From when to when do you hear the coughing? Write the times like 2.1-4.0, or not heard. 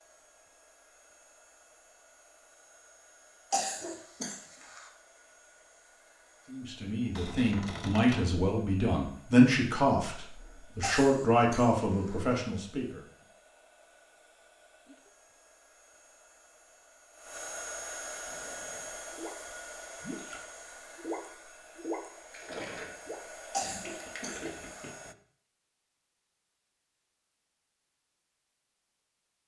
3.5-4.8, 10.8-12.2, 23.5-24.9.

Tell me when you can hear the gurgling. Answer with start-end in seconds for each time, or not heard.
18.2-19.4, 20.0-25.1.